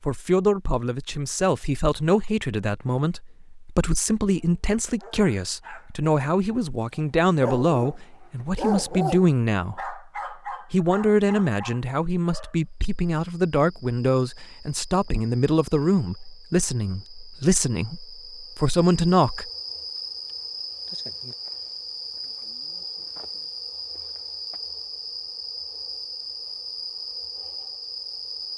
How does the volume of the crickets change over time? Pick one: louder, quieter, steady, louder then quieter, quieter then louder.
louder.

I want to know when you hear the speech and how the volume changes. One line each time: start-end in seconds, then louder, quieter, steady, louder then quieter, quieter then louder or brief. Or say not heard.
0.0-19.5 steady.